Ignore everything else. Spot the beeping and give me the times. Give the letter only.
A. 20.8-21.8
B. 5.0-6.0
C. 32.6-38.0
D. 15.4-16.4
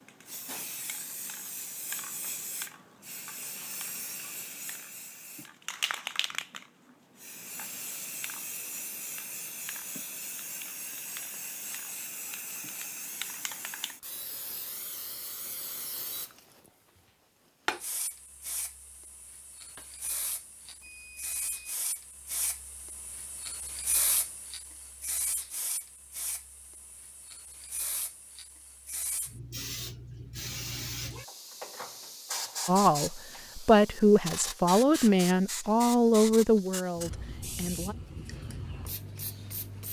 A.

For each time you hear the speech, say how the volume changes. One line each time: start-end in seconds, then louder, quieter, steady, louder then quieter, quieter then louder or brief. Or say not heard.
32.6-38.0 quieter.